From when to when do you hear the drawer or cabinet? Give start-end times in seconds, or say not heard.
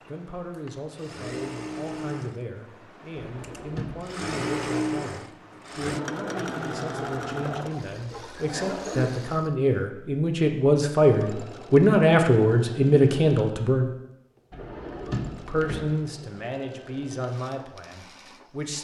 3.1-4.2, 7.5-8.9, 14.5-15.8.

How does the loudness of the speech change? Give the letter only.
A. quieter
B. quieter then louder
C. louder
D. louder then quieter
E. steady
D.